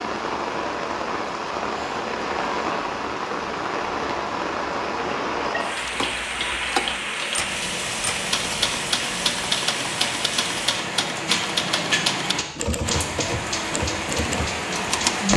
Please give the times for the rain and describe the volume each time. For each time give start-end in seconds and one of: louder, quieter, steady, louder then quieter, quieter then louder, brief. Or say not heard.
0.0-15.3 steady.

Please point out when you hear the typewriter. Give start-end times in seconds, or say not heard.
5.8-15.2.